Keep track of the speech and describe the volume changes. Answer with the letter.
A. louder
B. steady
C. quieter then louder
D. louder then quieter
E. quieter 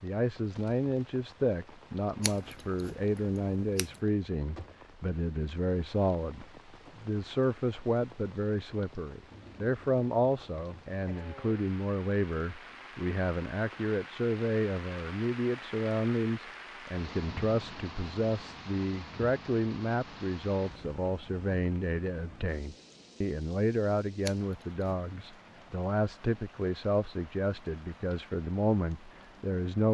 B.